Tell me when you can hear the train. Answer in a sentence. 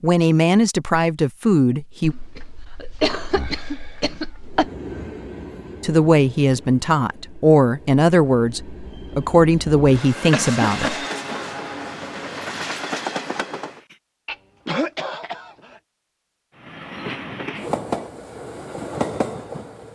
The train can be heard from 4.4 to 13.9 s and from 16.6 to 19.9 s.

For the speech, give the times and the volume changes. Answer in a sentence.
You can hear the speech briefly from 0.0 to 2.1 s; and from 5.8 to 10.9 s, at a steady volume.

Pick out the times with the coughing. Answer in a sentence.
You can hear the coughing from 2.0 to 4.7 s, from 10.3 to 11.5 s and from 14.2 to 15.8 s.